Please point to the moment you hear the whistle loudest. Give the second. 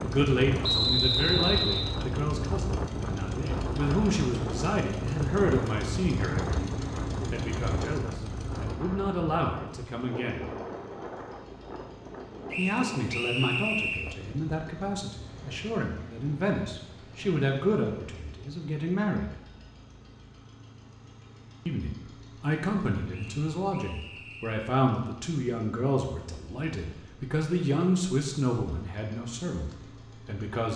1 s.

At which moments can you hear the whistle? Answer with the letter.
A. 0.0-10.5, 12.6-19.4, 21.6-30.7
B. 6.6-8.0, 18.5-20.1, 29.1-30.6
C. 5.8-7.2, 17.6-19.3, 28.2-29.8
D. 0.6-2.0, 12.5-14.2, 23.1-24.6
D.